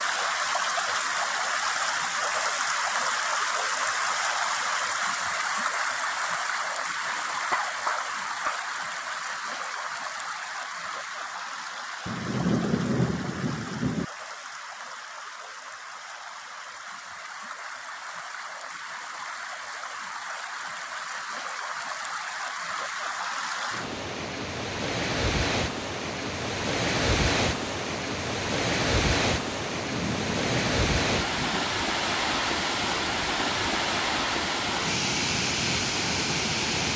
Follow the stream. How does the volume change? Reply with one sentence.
The loudness of the stream goes down, then up.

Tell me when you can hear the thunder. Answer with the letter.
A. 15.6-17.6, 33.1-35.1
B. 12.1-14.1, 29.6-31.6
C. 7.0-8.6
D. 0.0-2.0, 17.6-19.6
B.